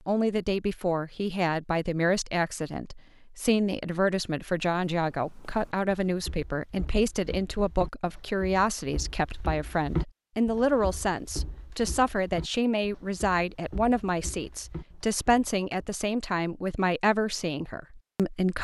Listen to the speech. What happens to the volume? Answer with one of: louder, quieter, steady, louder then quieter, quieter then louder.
steady.